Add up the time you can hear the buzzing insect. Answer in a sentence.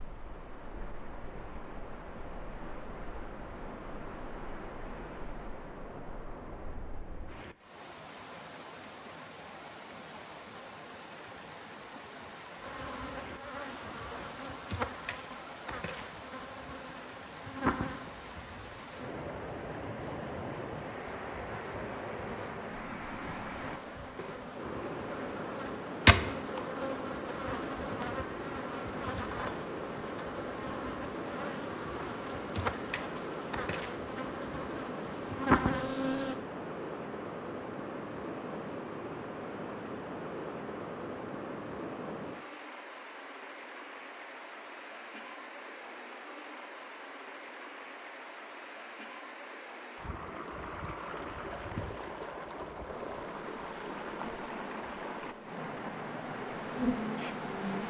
The buzzing insect can be heard for 29 seconds in total.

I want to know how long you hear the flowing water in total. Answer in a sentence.
You can hear the flowing water for 58 seconds altogether.